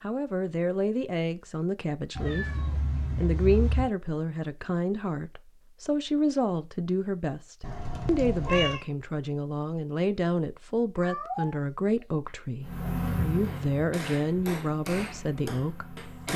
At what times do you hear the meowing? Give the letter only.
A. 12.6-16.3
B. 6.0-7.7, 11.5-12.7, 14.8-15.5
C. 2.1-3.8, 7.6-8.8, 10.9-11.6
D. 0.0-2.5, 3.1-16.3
C.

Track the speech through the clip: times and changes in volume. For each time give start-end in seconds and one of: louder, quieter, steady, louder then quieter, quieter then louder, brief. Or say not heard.
0.0-2.5 brief
3.1-16.3 steady.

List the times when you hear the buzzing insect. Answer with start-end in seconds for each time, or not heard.
12.6-16.3.